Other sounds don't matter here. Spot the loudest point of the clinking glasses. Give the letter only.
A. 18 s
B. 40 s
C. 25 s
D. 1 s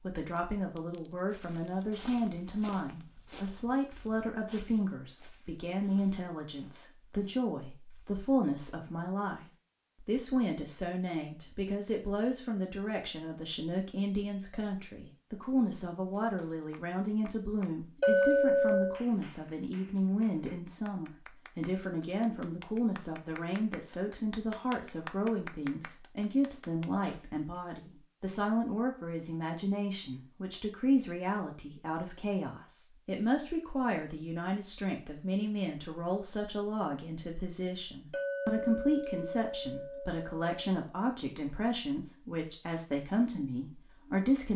A.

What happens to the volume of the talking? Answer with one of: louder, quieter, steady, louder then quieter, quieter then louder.
steady.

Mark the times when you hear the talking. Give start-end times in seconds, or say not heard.
0.0-44.5.